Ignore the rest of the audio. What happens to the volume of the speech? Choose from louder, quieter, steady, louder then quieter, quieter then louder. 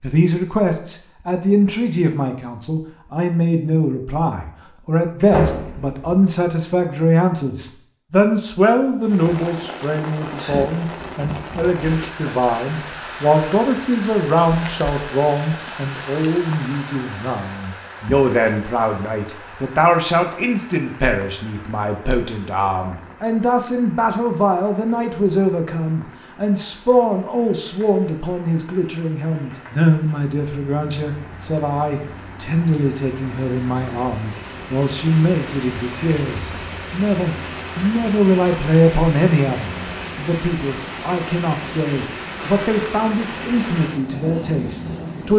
steady.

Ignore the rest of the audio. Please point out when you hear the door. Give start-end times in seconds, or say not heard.
5.2-6.0, 42.4-43.0.